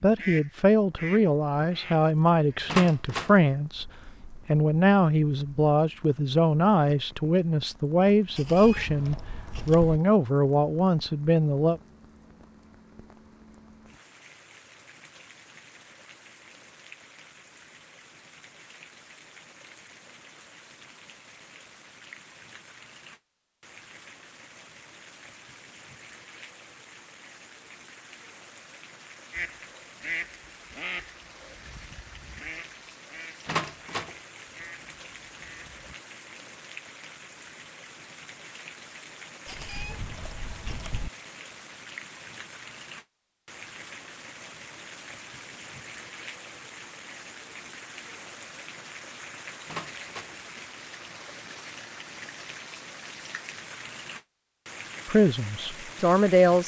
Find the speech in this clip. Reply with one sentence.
The speech can be heard from 0.0 to 11.8 s and from 55.0 to 56.6 s.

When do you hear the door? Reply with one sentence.
You can hear the door from 2.6 to 3.4 s, from 33.5 to 34.1 s and from 49.6 to 50.4 s.